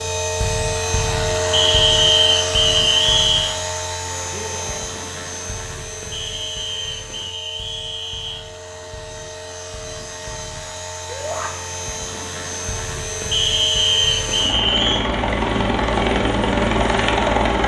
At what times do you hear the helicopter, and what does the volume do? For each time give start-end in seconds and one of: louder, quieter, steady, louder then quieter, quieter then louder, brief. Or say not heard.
0.0-17.6 quieter then louder.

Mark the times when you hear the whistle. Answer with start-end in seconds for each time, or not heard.
1.5-3.5, 6.1-8.4, 13.3-15.1.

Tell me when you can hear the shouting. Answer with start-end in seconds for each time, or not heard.
4.3-4.9, 11.1-11.5.